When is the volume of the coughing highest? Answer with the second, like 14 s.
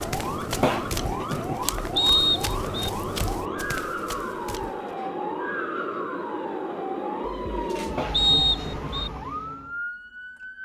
1 s.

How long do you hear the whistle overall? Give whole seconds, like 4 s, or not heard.
2 s.